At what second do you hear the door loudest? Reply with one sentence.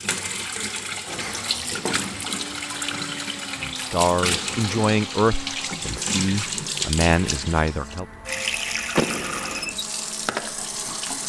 The volume of the door peaks at 9 seconds.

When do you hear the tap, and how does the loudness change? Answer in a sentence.
The tap can be heard from 0.0 to 11.2 s, at a steady volume.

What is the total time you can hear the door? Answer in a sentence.
The door can be heard for 2 seconds in total.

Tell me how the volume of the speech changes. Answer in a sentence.
The loudness of the speech goes down, then up.